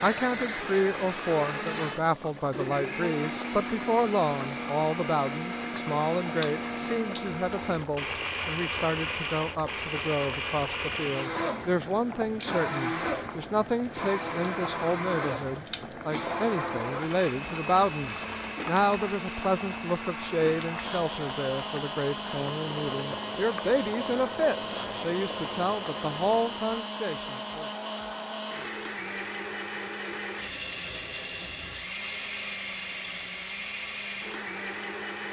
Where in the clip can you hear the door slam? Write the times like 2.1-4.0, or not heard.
not heard.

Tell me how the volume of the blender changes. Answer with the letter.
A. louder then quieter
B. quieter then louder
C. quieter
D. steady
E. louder
D.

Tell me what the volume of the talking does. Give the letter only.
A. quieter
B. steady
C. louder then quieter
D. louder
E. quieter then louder
B.